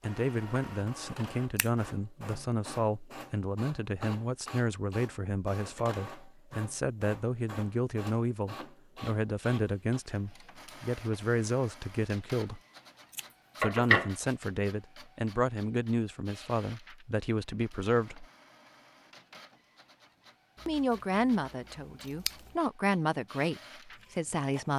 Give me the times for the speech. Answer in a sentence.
You can hear the speech from 0.0 to 12.6 s, from 13.6 to 18.2 s and from 20.6 to 24.7 s.